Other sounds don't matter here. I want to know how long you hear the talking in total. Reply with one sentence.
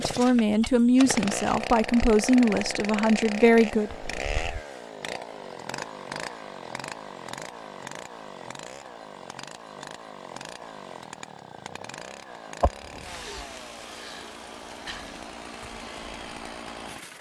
The talking can be heard for 4 seconds in total.